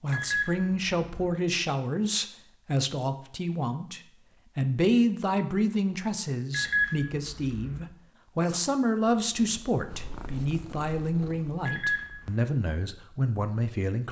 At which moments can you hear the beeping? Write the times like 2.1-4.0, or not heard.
0.1-1.3, 6.5-7.8, 11.7-12.3.